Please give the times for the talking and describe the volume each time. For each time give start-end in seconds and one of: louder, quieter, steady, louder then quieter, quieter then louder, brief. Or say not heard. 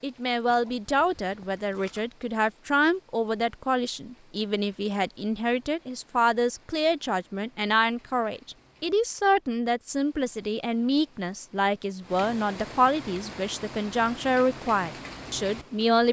0.0-16.0 steady.